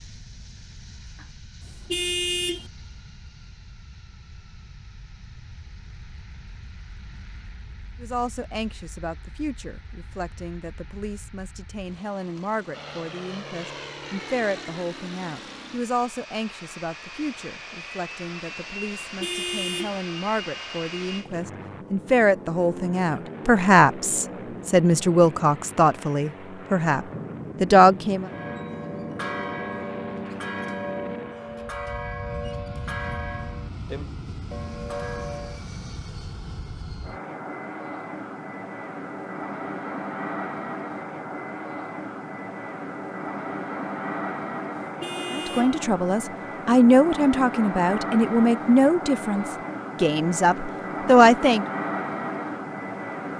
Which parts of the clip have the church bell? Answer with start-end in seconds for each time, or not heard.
28.2-35.6.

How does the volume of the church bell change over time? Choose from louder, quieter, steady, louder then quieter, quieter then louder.
steady.